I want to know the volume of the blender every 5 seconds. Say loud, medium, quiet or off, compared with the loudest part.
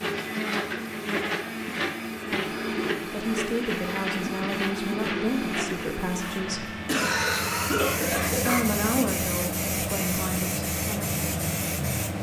loud, loud, off.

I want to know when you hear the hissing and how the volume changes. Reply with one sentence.
You can hear the hissing from 0.0 to 12.1 s, getting louder.